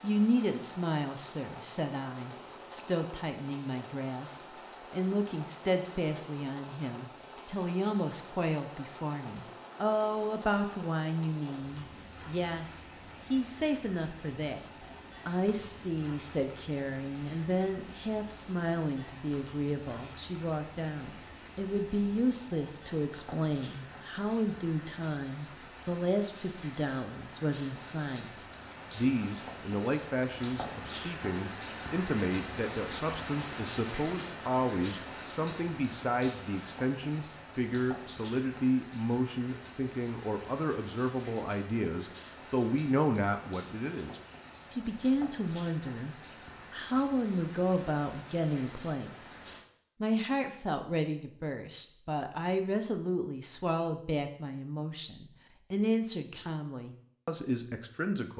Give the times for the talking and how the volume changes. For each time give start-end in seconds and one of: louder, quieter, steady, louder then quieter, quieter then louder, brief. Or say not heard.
0.0-14.6 steady
15.2-58.3 steady.